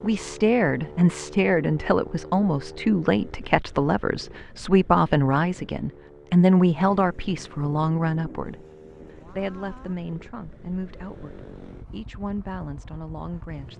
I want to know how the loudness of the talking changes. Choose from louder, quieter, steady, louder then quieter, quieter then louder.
quieter.